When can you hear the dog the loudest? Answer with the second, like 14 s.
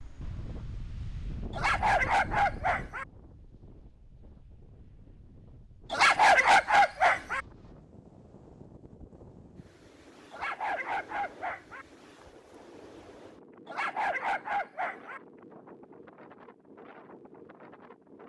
6 s.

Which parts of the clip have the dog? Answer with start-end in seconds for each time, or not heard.
1.5-3.0, 5.9-7.4, 10.3-11.8, 13.7-15.2.